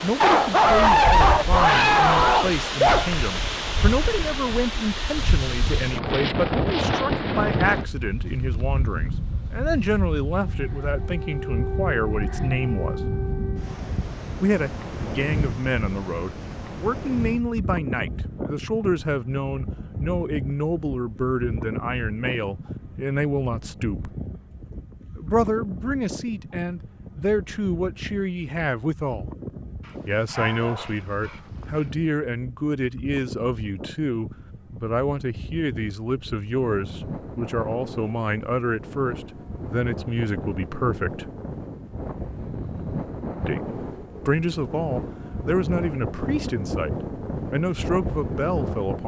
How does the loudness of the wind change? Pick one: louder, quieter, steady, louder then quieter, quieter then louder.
quieter then louder.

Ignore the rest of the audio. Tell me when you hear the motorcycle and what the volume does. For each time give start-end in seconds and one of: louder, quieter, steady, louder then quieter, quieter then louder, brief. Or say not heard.
not heard.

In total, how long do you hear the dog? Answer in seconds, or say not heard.
5 s.